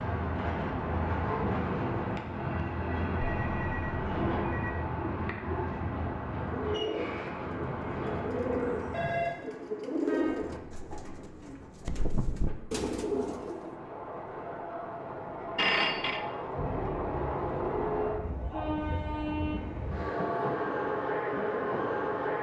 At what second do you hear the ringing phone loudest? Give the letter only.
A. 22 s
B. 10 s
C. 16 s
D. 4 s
C.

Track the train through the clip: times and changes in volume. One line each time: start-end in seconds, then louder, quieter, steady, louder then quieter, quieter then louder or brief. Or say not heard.
0.0-22.3 quieter then louder.